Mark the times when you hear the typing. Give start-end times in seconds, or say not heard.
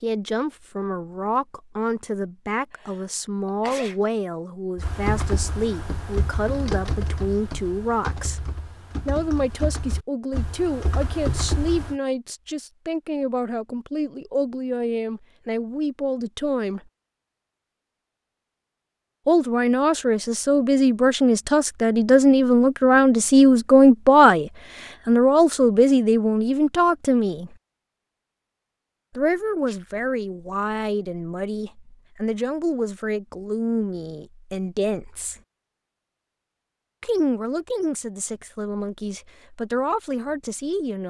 4.8-11.9.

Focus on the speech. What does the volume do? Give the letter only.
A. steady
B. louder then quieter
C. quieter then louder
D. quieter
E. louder
B.